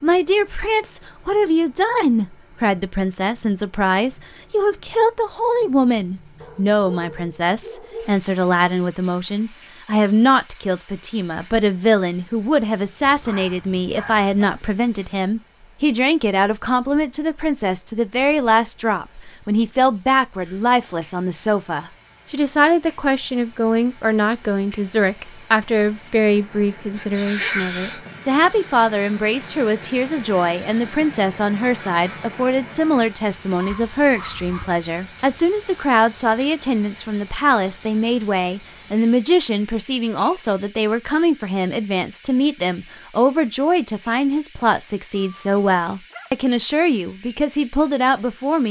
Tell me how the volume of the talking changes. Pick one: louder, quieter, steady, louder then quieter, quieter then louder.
steady.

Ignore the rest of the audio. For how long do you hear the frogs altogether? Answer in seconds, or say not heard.
not heard.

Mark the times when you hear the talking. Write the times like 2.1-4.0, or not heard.
0.0-48.6.